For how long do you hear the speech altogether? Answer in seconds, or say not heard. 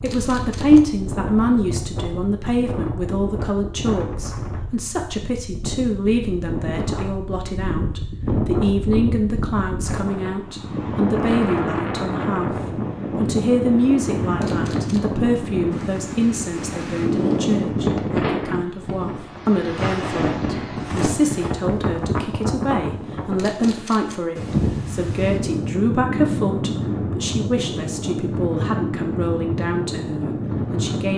31 s.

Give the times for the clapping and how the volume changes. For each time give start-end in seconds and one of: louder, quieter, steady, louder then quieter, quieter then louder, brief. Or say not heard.
not heard.